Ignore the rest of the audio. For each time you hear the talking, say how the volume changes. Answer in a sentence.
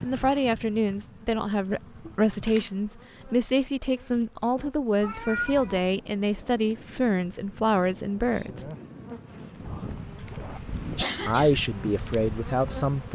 The talking can be heard from 0.0 to 8.7 s, at a steady volume; and briefly from 10.9 to 13.1 s.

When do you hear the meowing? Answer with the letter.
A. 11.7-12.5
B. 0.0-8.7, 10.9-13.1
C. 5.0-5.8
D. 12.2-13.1
C.